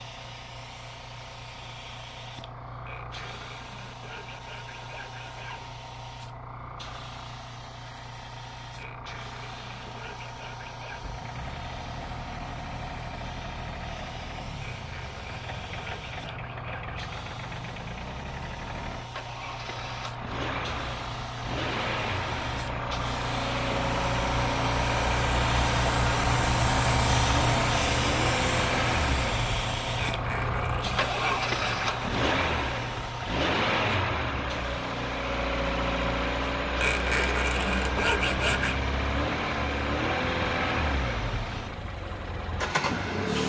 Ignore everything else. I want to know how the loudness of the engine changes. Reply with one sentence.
The volume of the engine goes up.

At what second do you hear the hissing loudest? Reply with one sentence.
The loudest moment of the hissing is at 27 seconds.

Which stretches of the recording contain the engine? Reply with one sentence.
The engine can be heard from 11.0 to 43.4 s.